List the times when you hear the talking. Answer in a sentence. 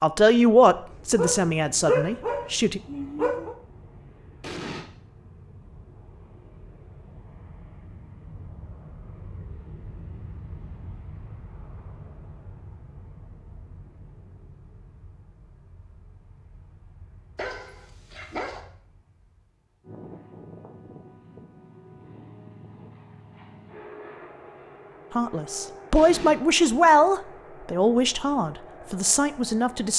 You can hear the talking from 0.0 to 2.8 s and from 25.1 to 29.9 s.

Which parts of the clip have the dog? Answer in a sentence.
The dog can be heard from 1.1 to 3.5 s and from 17.4 to 18.6 s.